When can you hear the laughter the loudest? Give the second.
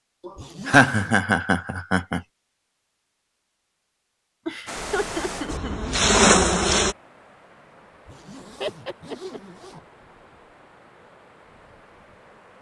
1 s.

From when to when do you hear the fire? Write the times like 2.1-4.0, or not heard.
not heard.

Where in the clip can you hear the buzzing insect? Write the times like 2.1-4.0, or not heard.
4.8-7.0.